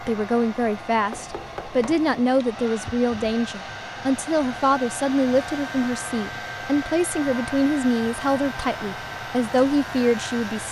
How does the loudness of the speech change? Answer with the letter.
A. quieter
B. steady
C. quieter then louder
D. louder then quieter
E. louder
B.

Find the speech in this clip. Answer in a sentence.
The speech can be heard from 0.0 to 10.6 s.